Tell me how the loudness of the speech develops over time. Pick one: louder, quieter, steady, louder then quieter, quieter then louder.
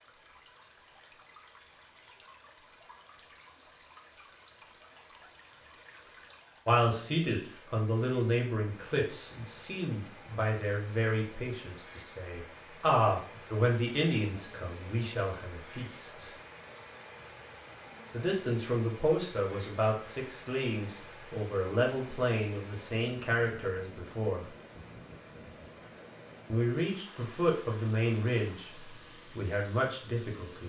steady.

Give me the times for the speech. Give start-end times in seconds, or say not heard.
6.7-16.3, 18.1-24.4, 26.5-30.6.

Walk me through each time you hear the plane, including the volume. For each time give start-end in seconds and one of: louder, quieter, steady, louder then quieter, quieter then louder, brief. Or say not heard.
not heard.